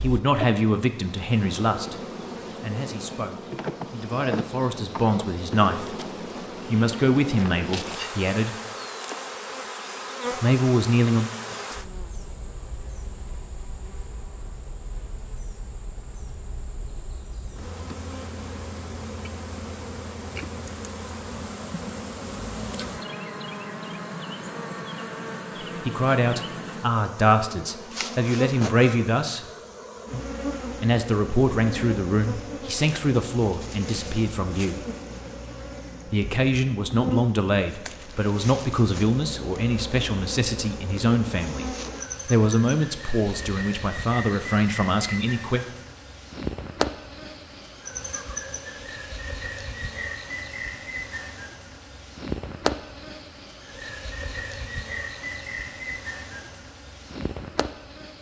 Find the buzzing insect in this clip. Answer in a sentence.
The buzzing insect can be heard from 0.0 to 58.1 s.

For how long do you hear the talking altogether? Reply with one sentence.
You can hear the talking for 27 seconds altogether.